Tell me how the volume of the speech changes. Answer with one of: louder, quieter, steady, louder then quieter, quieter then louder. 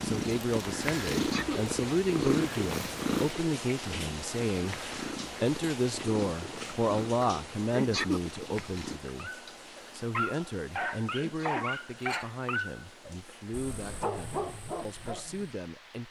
quieter.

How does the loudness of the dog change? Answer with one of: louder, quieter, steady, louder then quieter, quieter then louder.
quieter then louder.